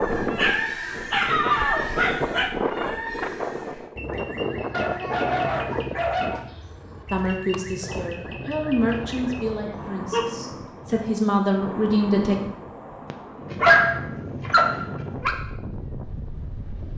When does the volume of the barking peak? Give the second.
14 s.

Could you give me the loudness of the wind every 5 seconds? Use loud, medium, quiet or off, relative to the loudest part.
loud, medium, medium, medium.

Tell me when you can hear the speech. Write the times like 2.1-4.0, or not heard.
7.1-12.3.